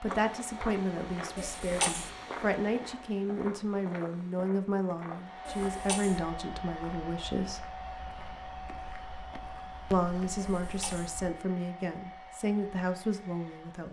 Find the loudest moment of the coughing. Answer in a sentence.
The volume of the coughing peaks at 2 seconds.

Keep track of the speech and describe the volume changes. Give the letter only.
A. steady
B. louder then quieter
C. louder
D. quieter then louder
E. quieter
A.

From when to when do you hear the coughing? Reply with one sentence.
You can hear the coughing from 1.4 to 2.1 s, from 5.5 to 6.2 s and from 10.3 to 11.1 s.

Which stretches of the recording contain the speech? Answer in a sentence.
You can hear the speech from 0.0 to 7.7 s and from 9.9 to 13.8 s.